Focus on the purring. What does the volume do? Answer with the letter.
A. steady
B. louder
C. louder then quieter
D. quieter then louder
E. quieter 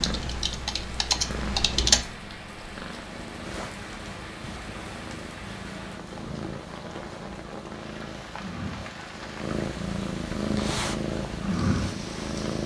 B.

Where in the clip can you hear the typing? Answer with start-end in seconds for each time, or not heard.
0.0-2.0.